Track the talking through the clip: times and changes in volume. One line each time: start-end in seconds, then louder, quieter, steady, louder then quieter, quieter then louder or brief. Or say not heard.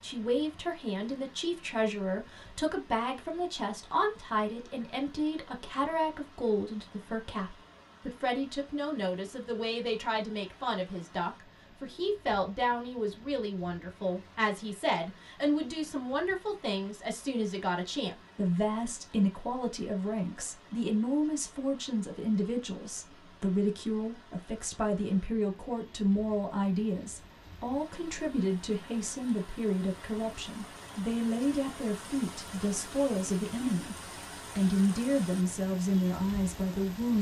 0.0-37.1 steady.